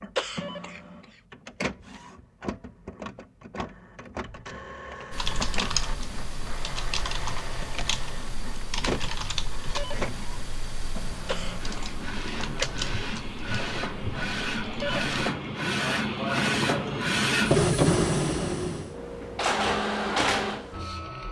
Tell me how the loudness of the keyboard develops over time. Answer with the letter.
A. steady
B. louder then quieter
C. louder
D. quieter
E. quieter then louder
D.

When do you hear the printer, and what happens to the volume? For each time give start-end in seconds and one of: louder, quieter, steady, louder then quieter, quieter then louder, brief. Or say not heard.
0.0-21.2 louder.